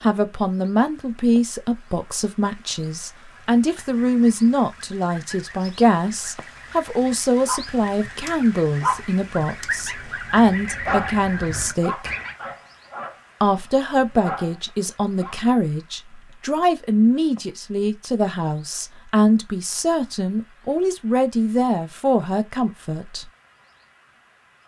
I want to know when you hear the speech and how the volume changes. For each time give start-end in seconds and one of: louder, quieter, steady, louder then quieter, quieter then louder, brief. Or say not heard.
0.0-12.1 steady
13.4-23.2 steady.